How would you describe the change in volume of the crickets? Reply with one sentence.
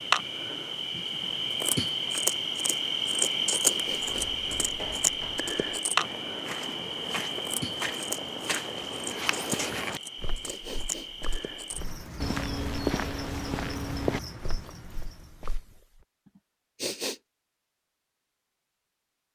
The loudness of the crickets goes down.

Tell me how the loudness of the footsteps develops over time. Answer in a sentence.
The loudness of the footsteps goes up.